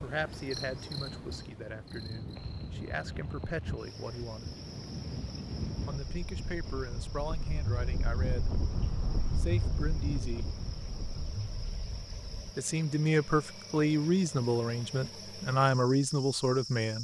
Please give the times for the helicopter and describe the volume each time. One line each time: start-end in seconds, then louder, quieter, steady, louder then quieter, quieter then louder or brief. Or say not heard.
not heard.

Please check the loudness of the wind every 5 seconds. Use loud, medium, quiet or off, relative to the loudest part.
medium, loud, medium, off.